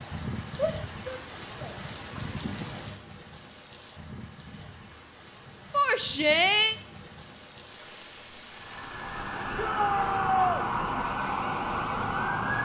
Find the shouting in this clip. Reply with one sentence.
The shouting can be heard from 0.6 to 1.8 s, from 5.7 to 6.8 s and from 9.6 to 10.7 s.